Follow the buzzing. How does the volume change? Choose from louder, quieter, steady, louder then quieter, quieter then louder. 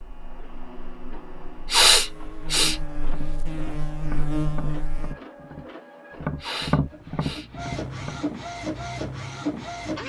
louder.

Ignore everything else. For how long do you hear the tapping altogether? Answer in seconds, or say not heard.
5 s.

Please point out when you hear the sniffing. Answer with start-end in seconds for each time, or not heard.
1.7-2.8, 6.4-7.5.